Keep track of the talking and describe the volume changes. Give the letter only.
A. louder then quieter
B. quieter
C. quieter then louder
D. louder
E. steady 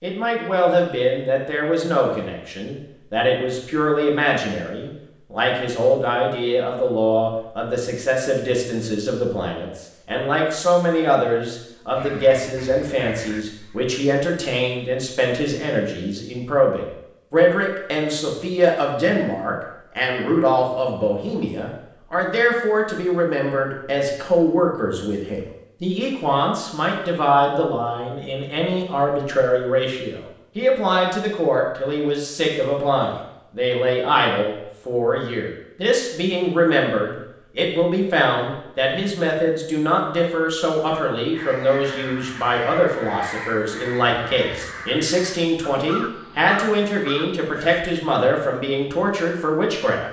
E.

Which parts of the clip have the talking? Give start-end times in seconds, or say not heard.
0.0-50.0.